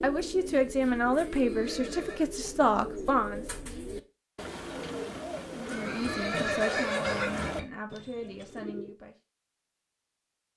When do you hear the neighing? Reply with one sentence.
The neighing can be heard from 1.3 to 2.2 s and from 5.7 to 7.7 s.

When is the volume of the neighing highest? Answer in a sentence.
The volume of the neighing peaks at 7 seconds.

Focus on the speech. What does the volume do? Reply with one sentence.
The loudness of the speech goes down.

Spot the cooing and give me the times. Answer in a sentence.
The cooing can be heard from 0.0 to 8.9 s.